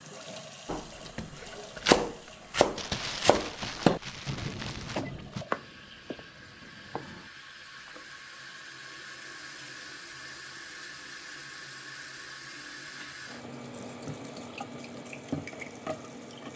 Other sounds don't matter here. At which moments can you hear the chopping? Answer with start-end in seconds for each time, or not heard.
0.7-7.3.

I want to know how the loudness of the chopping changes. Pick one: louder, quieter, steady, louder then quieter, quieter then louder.
quieter.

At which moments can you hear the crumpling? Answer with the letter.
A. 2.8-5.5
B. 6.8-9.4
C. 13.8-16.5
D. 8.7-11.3
A.